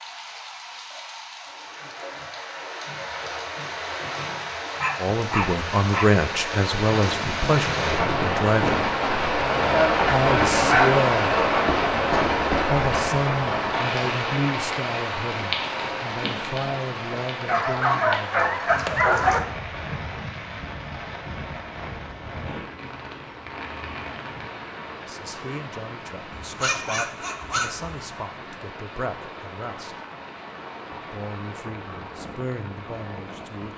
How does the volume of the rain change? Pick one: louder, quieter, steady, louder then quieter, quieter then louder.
louder then quieter.